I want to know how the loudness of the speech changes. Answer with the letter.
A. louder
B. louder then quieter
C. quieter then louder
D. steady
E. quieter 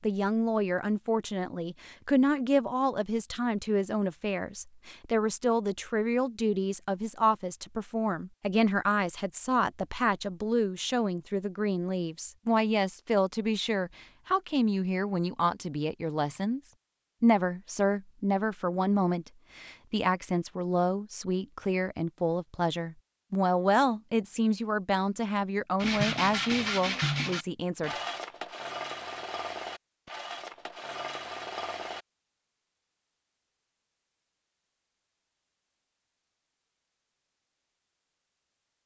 D.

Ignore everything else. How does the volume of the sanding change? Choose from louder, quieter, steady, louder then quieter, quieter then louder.
quieter.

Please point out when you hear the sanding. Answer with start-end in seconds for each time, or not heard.
25.8-32.0.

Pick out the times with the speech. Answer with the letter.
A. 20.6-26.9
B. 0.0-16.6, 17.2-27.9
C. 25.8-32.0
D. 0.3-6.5
B.